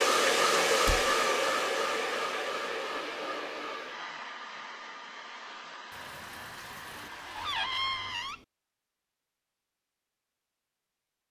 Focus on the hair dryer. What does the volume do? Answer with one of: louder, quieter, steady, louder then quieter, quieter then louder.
quieter.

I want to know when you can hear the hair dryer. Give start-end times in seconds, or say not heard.
0.0-8.4.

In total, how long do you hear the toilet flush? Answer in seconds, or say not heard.
3 s.